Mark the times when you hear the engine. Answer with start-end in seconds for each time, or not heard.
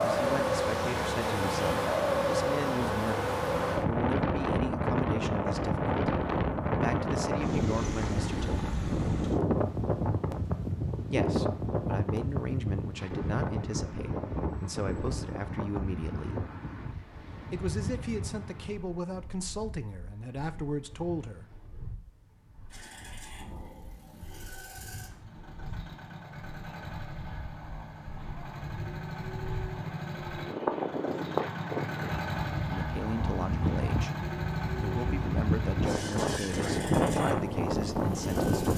0.0-3.5, 22.7-38.7.